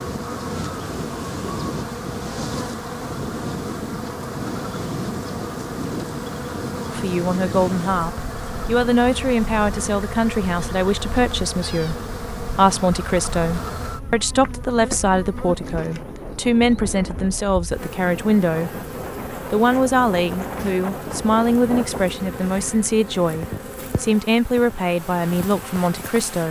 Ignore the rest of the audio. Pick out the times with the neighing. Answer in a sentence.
The neighing can't be heard in this clip.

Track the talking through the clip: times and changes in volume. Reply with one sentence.
You can hear the talking from 6.9 to 26.4 s, at a steady volume.